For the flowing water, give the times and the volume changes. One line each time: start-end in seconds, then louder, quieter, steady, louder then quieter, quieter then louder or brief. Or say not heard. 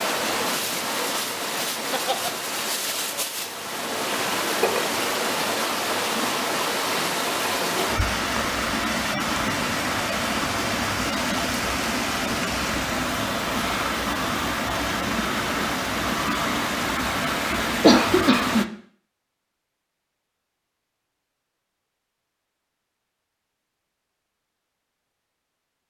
0.0-18.6 steady.